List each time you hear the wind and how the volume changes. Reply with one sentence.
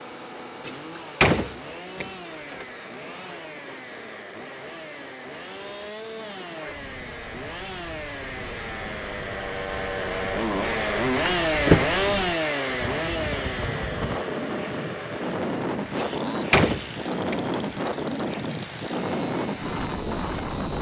The wind can be heard from 0.0 to 20.7 s, getting louder.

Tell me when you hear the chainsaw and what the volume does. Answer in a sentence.
The chainsaw can be heard from 0.0 to 20.7 s, getting louder then quieter.